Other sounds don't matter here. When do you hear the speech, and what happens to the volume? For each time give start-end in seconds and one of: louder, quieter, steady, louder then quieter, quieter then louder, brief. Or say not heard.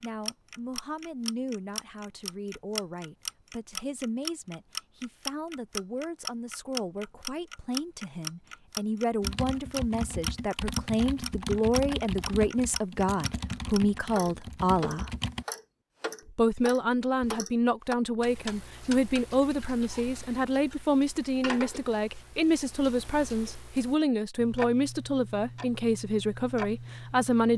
0.0-15.1 louder
16.2-27.5 steady.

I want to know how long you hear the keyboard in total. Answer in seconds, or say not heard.
6 s.